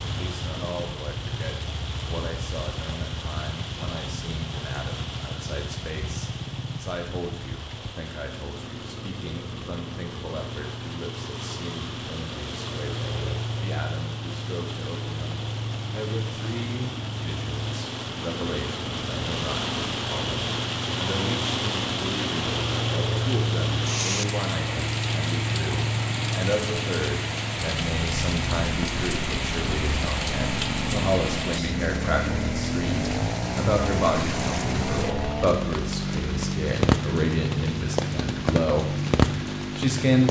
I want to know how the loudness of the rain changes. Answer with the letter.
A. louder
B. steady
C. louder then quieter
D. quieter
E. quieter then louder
A.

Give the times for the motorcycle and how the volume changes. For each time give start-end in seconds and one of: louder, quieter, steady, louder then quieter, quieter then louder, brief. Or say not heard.
0.0-40.2 louder.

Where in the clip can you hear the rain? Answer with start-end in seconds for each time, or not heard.
0.0-40.2.